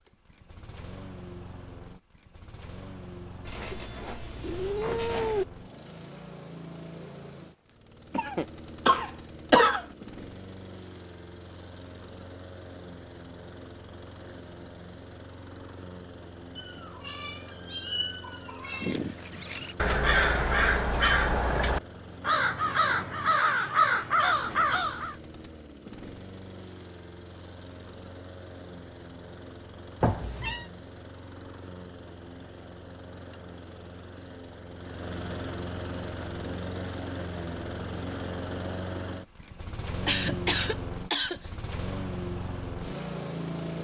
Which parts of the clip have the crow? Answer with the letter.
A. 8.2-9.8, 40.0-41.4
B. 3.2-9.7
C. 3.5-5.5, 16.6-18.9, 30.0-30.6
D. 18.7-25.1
D.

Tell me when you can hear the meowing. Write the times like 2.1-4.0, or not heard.
3.5-5.5, 16.6-18.9, 30.0-30.6.